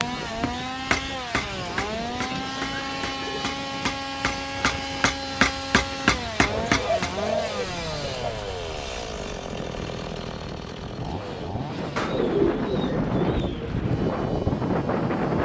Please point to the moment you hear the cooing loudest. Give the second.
12 s.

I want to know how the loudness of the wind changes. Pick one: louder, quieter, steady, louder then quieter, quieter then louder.
louder.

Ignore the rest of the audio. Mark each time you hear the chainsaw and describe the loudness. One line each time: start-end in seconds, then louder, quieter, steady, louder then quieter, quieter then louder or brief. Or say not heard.
0.0-15.3 quieter.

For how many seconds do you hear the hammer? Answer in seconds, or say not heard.
7 s.